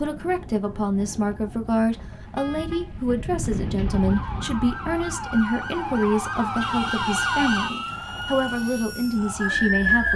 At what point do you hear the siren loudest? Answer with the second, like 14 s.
10 s.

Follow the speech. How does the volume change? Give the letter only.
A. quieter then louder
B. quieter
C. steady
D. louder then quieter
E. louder
C.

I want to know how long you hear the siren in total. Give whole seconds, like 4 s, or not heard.
10 s.